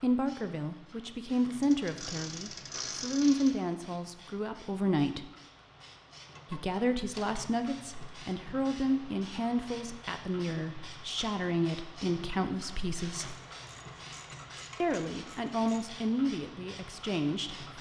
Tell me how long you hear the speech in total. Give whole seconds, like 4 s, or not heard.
15 s.